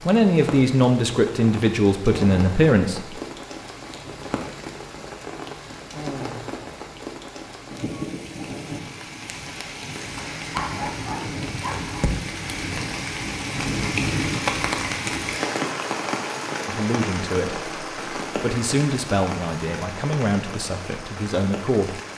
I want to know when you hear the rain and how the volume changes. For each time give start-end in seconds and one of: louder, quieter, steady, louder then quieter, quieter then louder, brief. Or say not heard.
0.0-22.1 louder then quieter.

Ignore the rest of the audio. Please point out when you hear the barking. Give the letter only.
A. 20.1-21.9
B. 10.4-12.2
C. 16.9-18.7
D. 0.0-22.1
B.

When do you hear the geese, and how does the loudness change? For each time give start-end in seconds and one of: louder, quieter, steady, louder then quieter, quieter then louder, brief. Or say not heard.
not heard.